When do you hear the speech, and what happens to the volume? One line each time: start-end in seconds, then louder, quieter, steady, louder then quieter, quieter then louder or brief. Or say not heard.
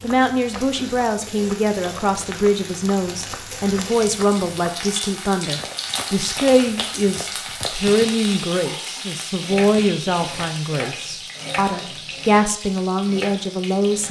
0.0-14.0 steady.